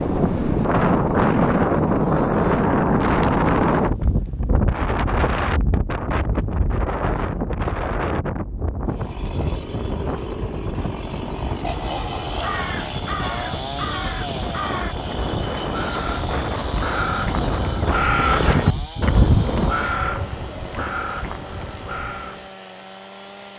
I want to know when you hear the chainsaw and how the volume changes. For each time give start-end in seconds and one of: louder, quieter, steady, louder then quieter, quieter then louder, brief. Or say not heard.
8.8-23.5 quieter.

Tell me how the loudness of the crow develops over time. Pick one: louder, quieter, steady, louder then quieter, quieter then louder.
louder then quieter.